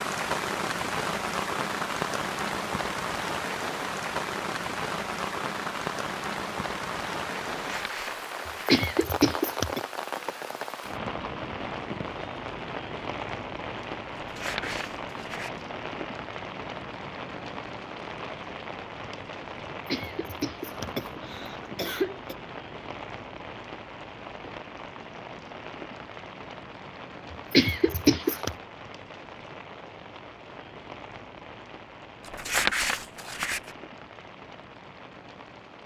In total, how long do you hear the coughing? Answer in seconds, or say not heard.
5 s.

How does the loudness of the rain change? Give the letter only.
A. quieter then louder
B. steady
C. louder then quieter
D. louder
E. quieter
E.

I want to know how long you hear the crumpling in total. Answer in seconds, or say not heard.
4 s.